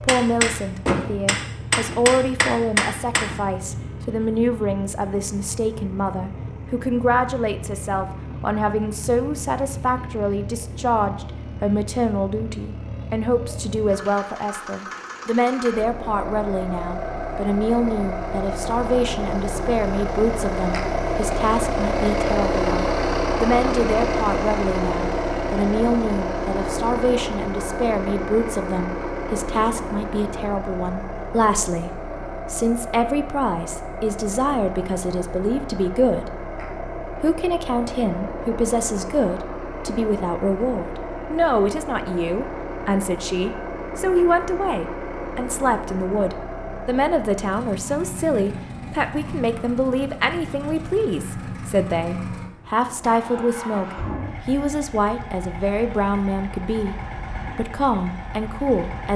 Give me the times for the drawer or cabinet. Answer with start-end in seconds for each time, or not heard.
not heard.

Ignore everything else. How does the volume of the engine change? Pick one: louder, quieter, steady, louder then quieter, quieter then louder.
louder then quieter.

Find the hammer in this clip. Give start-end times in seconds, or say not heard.
0.0-3.5.